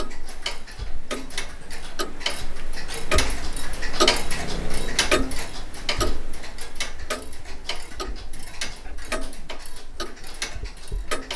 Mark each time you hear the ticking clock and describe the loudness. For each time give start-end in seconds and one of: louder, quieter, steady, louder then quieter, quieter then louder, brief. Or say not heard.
0.0-11.3 louder then quieter.